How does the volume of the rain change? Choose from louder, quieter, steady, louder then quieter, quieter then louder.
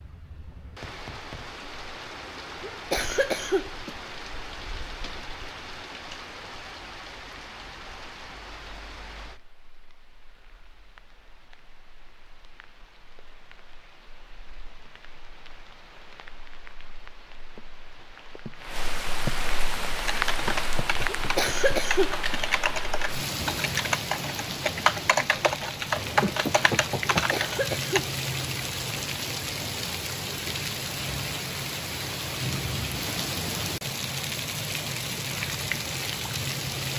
quieter then louder.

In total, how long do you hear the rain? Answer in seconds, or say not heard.
37 s.